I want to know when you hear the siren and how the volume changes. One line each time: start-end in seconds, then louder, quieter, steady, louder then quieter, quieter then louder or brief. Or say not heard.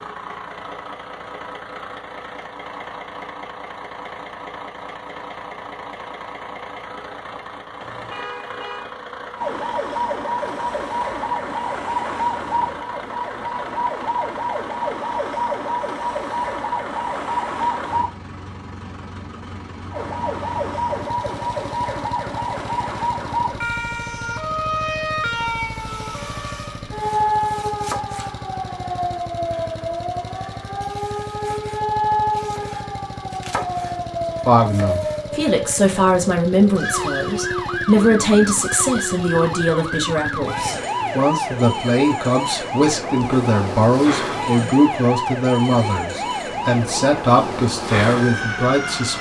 9.3-18.1 steady
19.9-49.1 steady.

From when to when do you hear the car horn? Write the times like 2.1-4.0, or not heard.
7.8-8.9.